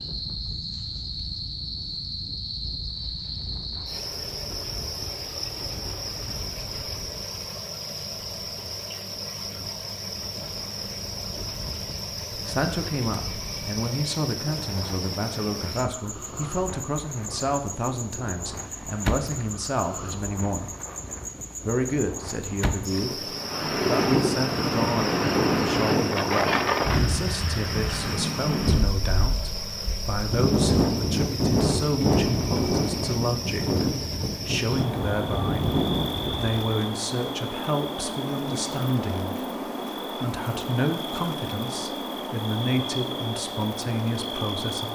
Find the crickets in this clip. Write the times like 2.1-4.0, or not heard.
0.0-44.9.